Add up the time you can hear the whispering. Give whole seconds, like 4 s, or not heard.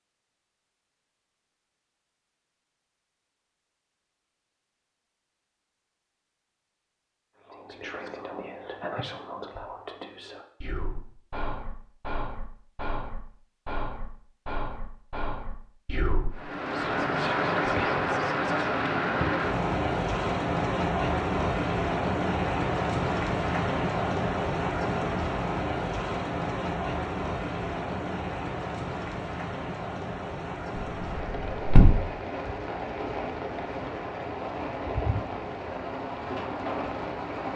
11 s.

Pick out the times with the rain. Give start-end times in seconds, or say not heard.
16.3-37.5.